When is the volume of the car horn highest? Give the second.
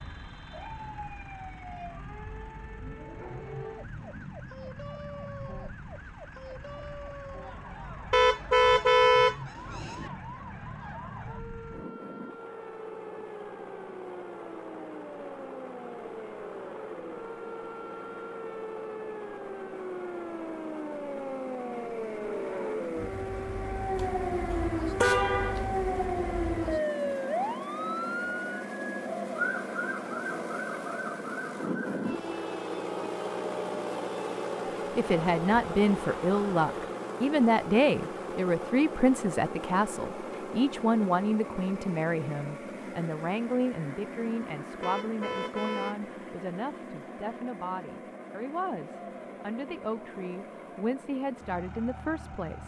9 s.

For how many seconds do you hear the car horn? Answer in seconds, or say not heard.
5 s.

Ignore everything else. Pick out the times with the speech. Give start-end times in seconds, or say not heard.
35.0-52.6.